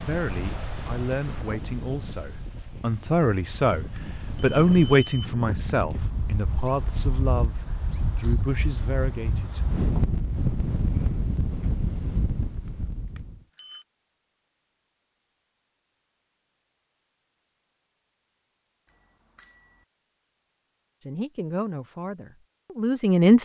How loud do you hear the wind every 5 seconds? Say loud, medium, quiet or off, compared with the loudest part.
medium, loud, loud, off, off.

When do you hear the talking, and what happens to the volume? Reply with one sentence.
The talking can be heard from 0.0 to 10.1 s, getting louder then quieter; and briefly from 21.1 to 23.4 s.